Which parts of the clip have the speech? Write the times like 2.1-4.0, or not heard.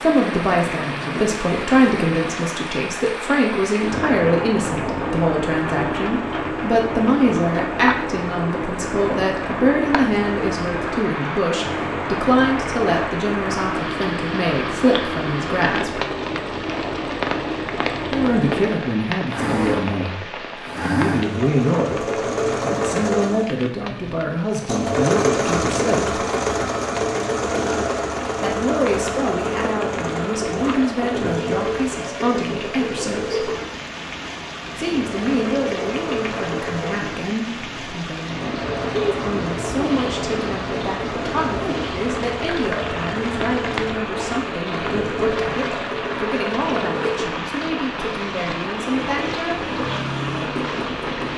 0.0-16.1, 18.1-22.0, 22.6-26.2, 28.4-33.5, 34.8-49.6.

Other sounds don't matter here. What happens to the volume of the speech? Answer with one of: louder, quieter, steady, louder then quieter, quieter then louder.
quieter.